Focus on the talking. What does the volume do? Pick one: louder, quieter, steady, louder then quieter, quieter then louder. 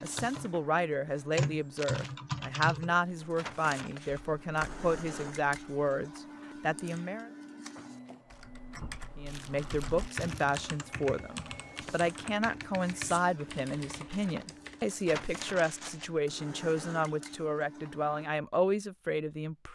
steady.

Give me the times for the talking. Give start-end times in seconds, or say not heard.
0.0-7.3, 9.2-19.7.